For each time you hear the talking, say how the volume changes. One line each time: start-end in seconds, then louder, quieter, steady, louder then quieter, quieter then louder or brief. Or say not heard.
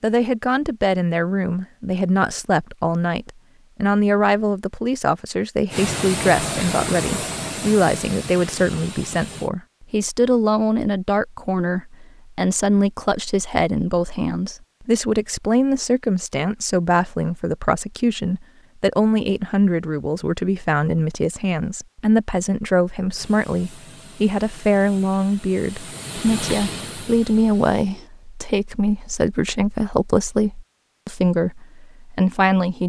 0.0-32.8 steady.